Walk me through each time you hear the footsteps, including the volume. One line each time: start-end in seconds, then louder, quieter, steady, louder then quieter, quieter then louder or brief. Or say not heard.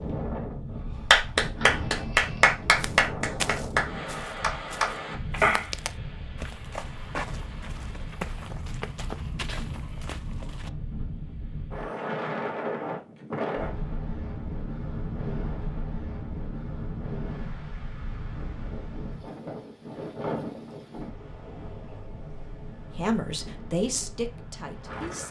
2.8-10.7 quieter.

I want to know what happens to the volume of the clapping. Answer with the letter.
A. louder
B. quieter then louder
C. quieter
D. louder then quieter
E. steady
B.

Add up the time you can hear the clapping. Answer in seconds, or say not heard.
5 s.